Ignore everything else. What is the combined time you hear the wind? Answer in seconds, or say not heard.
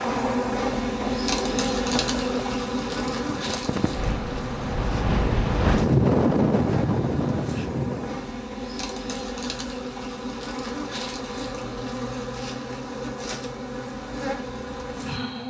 8 s.